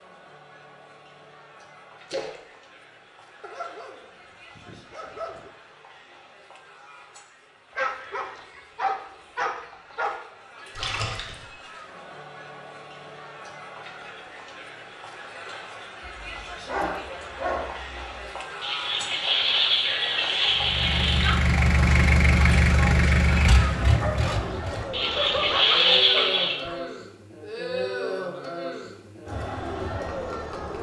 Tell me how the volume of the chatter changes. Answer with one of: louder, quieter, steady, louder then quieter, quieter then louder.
louder.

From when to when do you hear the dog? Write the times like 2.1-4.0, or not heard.
3.4-5.5, 7.8-10.2, 16.1-18.2, 23.9-26.8.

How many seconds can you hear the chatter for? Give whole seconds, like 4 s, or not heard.
31 s.